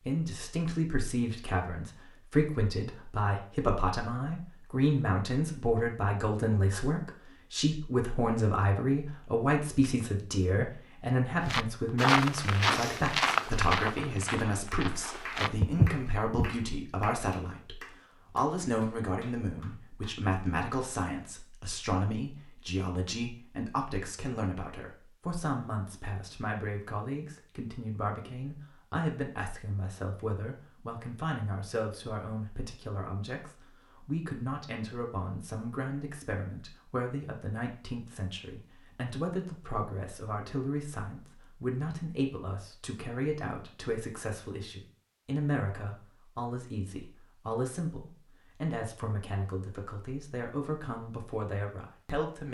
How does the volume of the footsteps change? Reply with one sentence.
The loudness of the footsteps goes down, then up.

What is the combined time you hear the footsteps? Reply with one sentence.
The footsteps can be heard for 5 seconds in total.